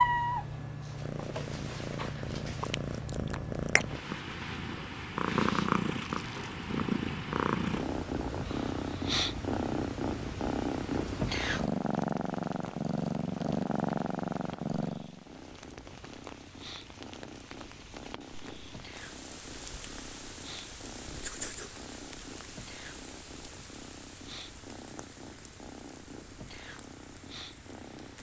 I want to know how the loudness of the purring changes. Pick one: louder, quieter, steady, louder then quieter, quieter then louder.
quieter.